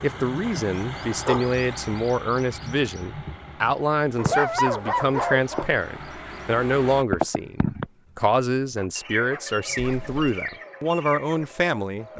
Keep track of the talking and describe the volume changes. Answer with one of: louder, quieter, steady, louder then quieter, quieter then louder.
steady.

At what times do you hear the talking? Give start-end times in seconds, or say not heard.
0.0-12.1.